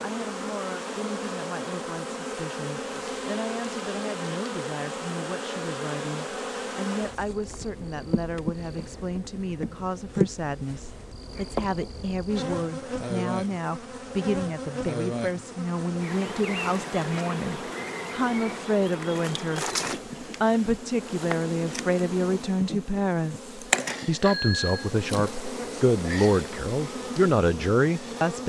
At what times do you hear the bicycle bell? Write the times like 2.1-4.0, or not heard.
24.2-24.9.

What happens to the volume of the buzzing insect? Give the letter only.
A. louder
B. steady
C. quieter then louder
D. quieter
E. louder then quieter
B.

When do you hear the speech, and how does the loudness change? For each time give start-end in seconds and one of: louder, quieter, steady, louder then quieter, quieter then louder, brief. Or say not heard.
0.0-28.4 louder.